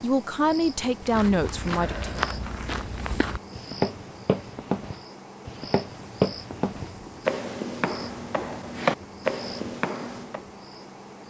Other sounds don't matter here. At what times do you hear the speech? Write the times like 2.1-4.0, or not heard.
0.0-2.1.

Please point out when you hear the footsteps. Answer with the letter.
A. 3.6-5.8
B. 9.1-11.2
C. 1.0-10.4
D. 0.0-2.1
C.